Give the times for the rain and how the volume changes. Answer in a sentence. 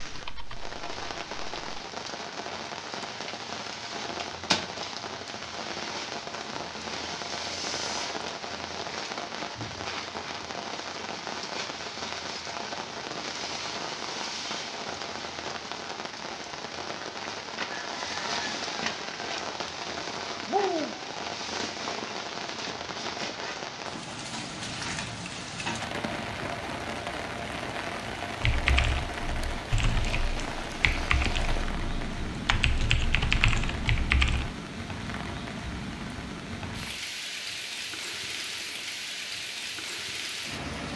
The rain can be heard from 0.0 to 40.9 s, at a steady volume.